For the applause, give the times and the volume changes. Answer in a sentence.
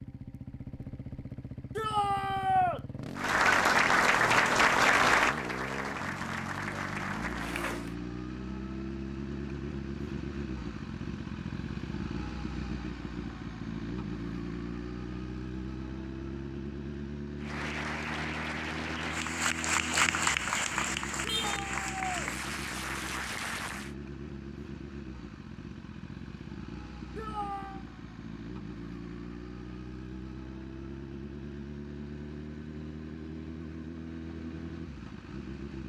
You can hear the applause from 3.1 to 8.0 s, getting quieter; and from 17.4 to 23.9 s, getting louder then quieter.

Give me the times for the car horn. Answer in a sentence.
You can hear the car horn from 21.2 to 21.7 s.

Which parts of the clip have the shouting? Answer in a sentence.
The shouting can be heard from 1.8 to 2.8 s, from 21.4 to 22.1 s and from 27.1 to 27.8 s.